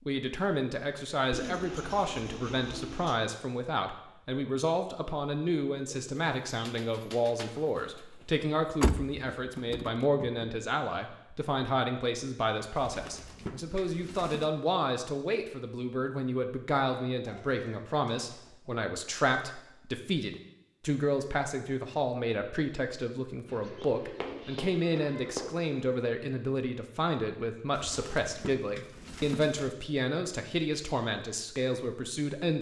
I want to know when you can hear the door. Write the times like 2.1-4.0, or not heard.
8.8-10.4.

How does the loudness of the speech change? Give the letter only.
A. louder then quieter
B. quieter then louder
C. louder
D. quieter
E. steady
E.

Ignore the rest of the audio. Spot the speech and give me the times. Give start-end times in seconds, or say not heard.
0.1-32.5.